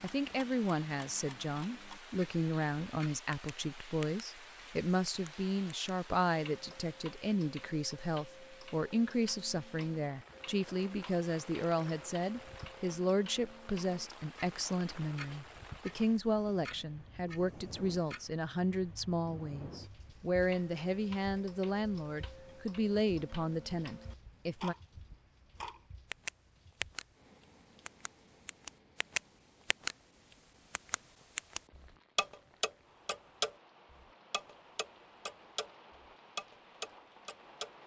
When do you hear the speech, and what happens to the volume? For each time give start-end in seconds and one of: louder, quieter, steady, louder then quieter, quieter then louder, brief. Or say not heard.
0.0-24.8 steady.